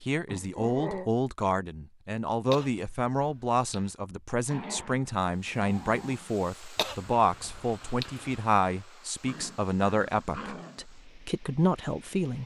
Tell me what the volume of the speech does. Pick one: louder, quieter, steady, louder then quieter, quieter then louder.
steady.